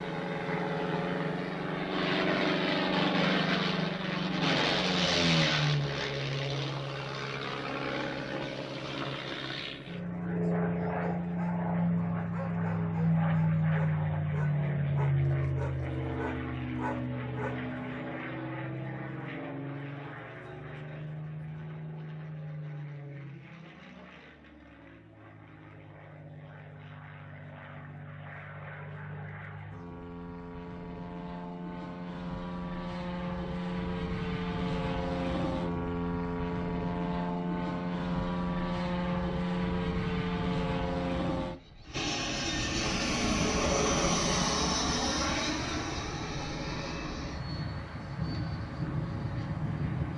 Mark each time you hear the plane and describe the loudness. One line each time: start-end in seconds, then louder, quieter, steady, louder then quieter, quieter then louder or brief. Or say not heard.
0.0-50.1 quieter then louder.